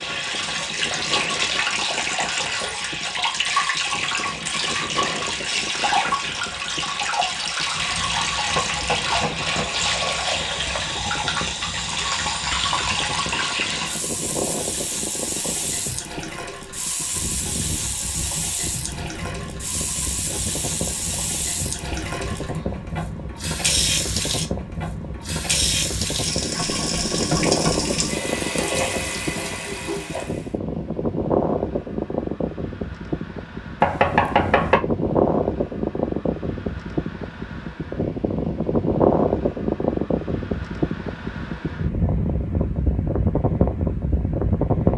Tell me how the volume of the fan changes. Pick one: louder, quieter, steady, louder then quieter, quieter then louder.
louder.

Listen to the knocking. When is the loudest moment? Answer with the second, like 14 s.
34 s.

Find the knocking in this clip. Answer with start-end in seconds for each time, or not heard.
8.6-9.7, 26.6-28.1, 33.8-34.8.